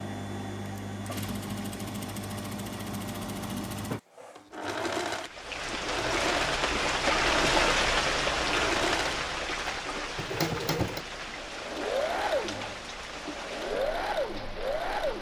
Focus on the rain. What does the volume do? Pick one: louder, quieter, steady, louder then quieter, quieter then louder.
quieter.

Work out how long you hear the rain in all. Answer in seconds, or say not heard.
10 s.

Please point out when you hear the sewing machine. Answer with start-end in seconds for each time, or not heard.
0.0-15.1.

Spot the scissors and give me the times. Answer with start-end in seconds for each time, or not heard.
not heard.